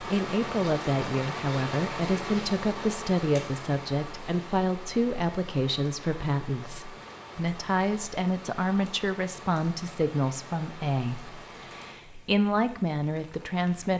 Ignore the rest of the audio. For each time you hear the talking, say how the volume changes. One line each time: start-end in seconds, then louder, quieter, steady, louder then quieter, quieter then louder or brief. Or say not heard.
0.0-13.9 steady.